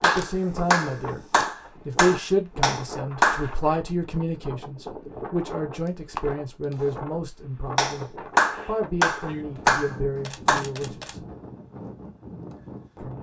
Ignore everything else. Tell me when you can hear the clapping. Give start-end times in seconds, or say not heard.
0.0-3.5, 7.8-10.7.